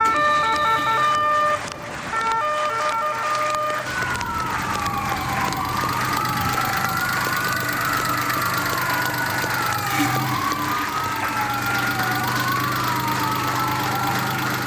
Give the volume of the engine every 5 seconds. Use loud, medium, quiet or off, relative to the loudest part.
medium, loud, loud.